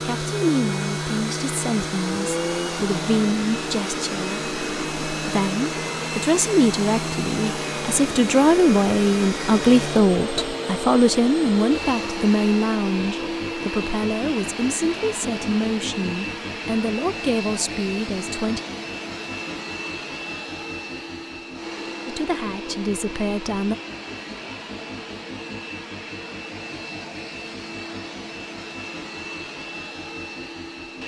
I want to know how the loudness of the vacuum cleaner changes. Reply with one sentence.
The volume of the vacuum cleaner goes down.